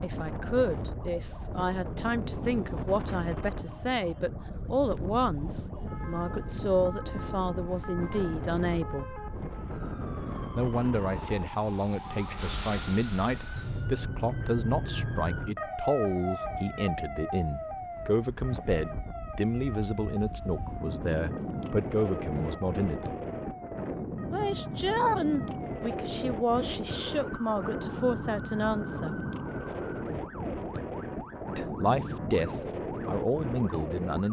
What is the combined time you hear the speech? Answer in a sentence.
The speech can be heard for 29 seconds in total.